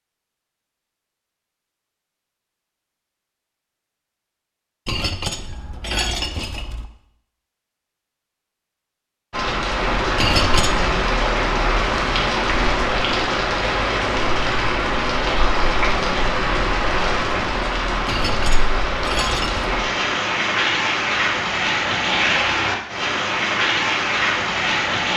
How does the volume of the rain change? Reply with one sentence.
The volume of the rain stays about the same.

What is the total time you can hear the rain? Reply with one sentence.
The rain can be heard for 16 seconds in total.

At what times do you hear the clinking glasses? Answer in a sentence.
You can hear the clinking glasses from 4.8 to 6.8 s, from 10.2 to 10.8 s and from 18.1 to 19.6 s.